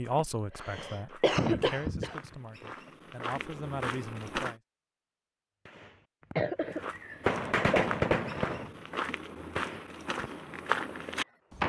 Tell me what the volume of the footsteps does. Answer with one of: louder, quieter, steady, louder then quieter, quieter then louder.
louder.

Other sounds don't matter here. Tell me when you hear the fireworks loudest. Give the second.
8 s.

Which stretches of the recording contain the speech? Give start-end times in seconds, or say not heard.
0.0-4.5.